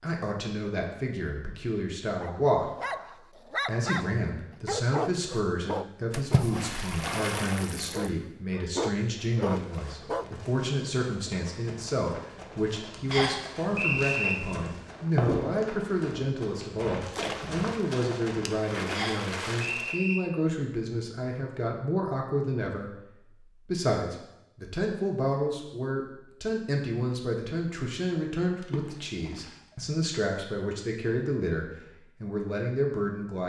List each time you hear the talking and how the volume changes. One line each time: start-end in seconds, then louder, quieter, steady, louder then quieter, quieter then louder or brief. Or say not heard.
0.0-2.7 brief
3.6-33.4 steady.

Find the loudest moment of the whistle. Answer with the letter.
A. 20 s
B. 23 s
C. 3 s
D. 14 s
D.